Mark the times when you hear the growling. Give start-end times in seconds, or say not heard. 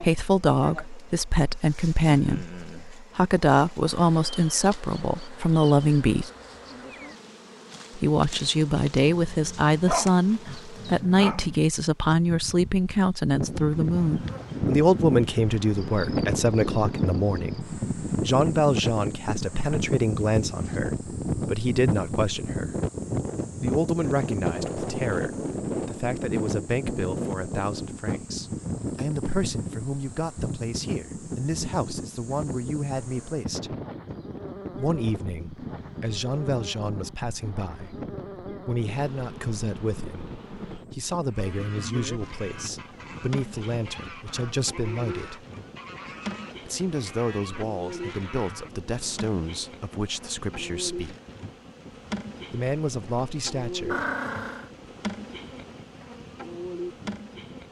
9.2-11.7, 53.9-54.7.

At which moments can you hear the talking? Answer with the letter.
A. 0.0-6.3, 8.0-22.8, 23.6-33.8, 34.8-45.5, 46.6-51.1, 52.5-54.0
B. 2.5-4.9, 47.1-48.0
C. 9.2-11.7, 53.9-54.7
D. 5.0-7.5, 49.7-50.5
A.